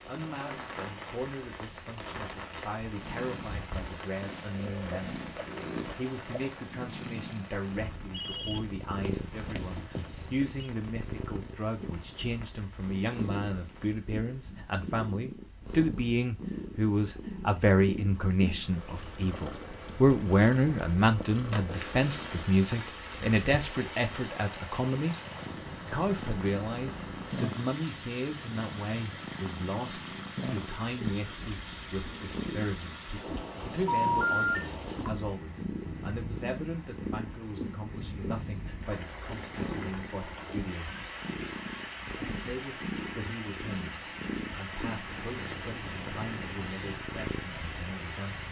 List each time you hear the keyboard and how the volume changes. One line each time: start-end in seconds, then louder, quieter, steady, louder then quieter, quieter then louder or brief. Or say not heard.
not heard.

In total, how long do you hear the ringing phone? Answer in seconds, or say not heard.
4 s.